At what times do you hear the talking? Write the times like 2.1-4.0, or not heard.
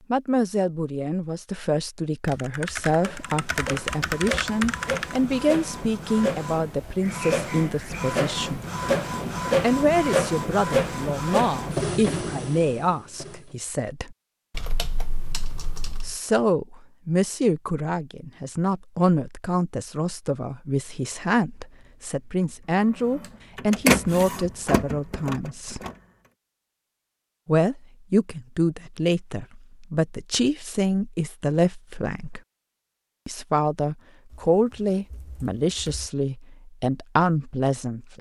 0.1-8.7, 9.6-14.2, 16.1-25.8, 27.4-32.4, 33.2-38.1.